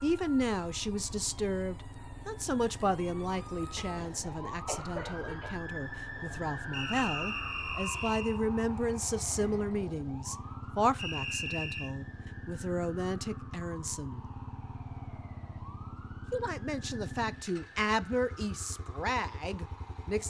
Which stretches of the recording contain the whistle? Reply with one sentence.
You can hear the whistle from 6.7 to 8.4 s and from 10.9 to 11.9 s.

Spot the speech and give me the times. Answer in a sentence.
You can hear the speech from 0.0 to 14.2 s and from 16.3 to 20.2 s.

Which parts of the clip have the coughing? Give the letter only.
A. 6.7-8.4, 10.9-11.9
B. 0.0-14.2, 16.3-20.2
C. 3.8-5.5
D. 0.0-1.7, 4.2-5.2
C.